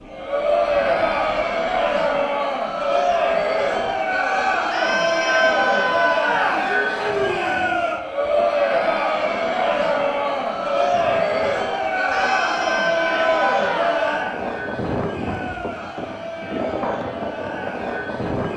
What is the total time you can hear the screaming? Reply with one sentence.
The screaming can be heard for 4 seconds in total.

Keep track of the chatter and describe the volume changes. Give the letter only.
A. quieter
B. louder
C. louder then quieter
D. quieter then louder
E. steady
A.